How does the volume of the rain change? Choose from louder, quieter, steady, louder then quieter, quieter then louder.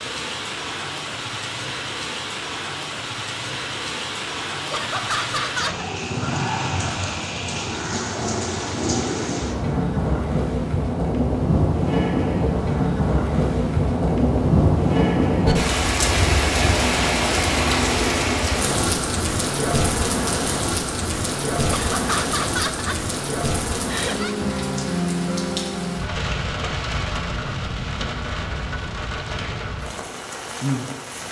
louder then quieter.